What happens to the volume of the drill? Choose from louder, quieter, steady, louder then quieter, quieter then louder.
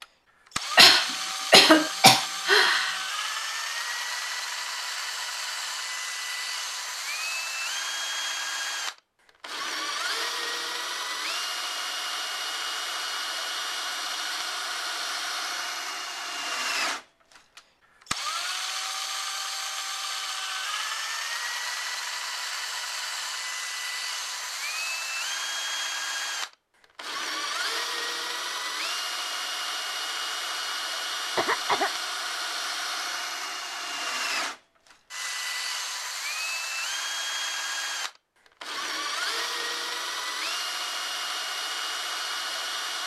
steady.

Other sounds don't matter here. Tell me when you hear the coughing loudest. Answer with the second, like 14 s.
2 s.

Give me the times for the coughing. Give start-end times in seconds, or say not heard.
0.8-3.0, 31.4-31.9.